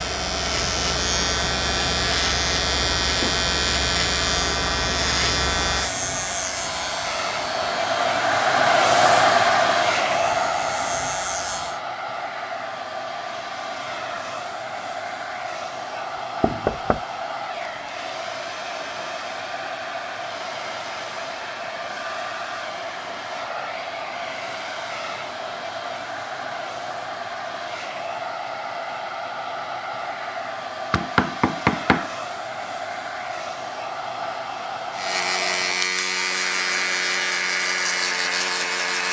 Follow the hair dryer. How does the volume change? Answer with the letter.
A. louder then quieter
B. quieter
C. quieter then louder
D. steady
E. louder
A.